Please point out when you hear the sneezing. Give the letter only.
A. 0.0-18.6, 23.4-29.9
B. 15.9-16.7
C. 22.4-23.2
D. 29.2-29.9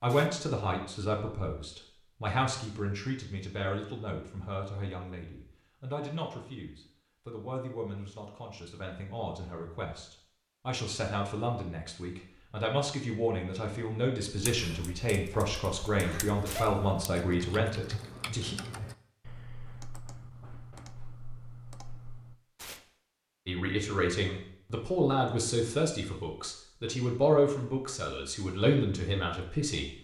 B.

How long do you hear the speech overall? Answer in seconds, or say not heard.
25 s.